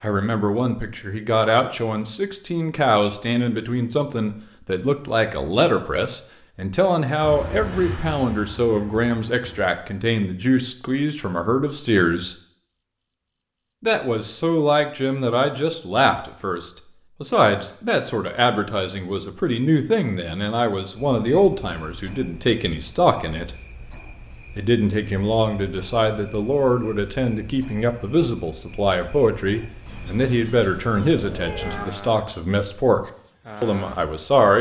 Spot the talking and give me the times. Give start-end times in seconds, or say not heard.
0.0-12.3, 13.8-23.5, 24.6-33.0, 33.6-34.5.